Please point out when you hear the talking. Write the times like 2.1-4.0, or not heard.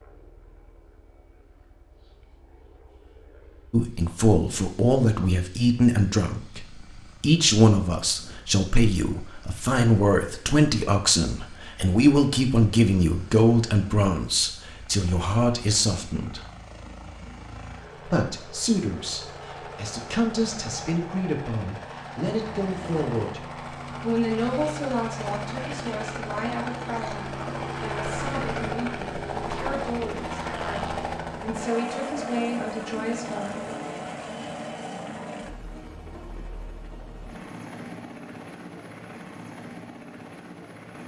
3.7-16.4, 18.1-33.6.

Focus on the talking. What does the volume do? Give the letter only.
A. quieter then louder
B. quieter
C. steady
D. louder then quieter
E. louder
B.